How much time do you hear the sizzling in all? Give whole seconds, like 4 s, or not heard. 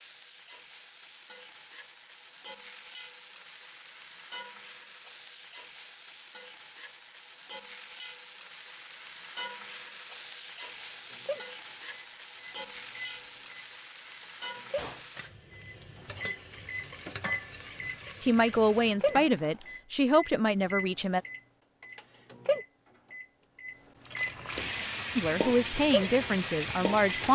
23 s.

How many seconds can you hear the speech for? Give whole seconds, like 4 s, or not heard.
5 s.